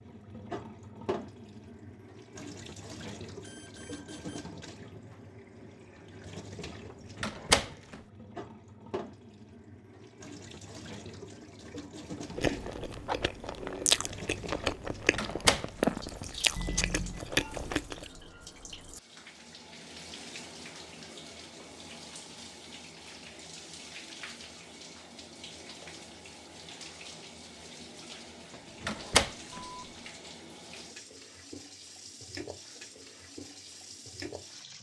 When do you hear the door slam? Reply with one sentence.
You can hear the door slam from 7.2 to 8.0 s, from 15.2 to 15.7 s and from 28.8 to 29.6 s.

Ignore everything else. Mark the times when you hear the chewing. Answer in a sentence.
The chewing can be heard from 12.3 to 18.1 s.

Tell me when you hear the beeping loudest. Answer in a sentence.
The volume of the beeping peaks at 17 seconds.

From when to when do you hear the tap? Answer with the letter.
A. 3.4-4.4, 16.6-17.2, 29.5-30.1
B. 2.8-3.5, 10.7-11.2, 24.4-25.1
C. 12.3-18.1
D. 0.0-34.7
D.